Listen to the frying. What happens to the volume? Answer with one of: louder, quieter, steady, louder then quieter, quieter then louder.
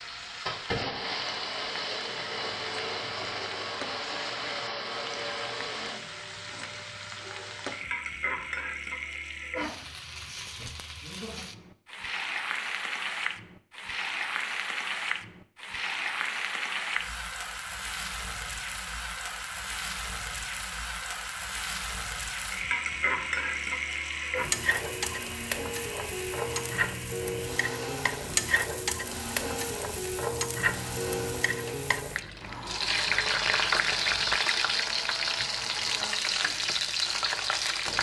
louder.